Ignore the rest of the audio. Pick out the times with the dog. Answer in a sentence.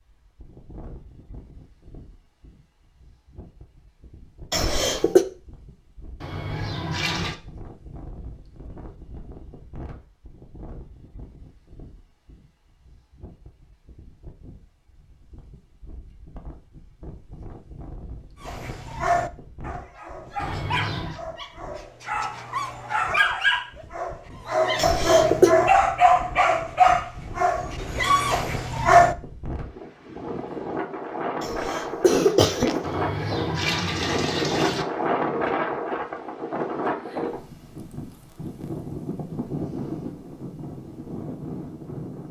You can hear the dog from 18.4 to 29.1 s.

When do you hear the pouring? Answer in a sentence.
You can hear the pouring from 6.2 to 7.3 s, from 20.4 to 21.2 s and from 32.8 to 34.9 s.